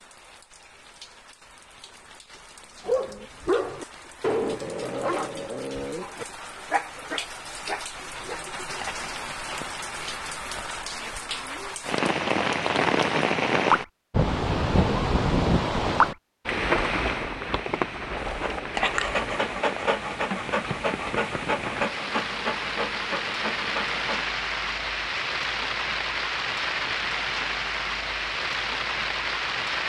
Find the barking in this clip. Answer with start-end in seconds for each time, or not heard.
2.9-8.9, 18.1-24.2.